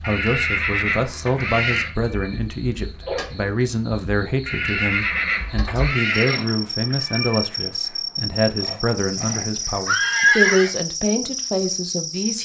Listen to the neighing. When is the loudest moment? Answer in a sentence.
The loudest moment of the neighing is at 10 seconds.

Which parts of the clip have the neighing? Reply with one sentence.
You can hear the neighing from 0.0 to 1.9 s, from 4.5 to 6.5 s and from 8.6 to 10.7 s.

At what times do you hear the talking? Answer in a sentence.
The talking can be heard from 0.0 to 12.4 s.